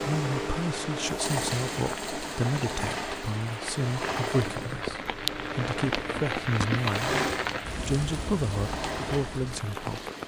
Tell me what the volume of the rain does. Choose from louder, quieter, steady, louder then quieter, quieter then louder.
louder then quieter.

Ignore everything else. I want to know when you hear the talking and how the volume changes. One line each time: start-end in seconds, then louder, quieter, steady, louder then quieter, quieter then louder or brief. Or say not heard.
0.0-10.1 steady.